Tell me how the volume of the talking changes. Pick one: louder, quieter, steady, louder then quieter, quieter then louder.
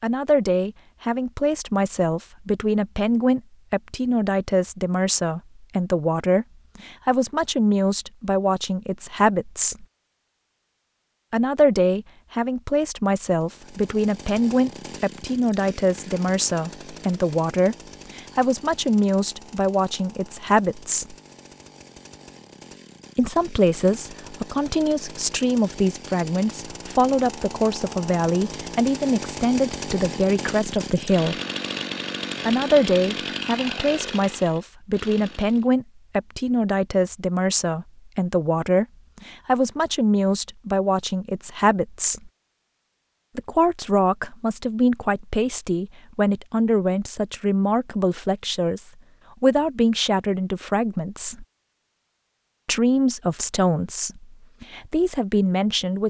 steady.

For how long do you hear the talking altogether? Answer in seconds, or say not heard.
49 s.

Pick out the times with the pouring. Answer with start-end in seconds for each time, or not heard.
not heard.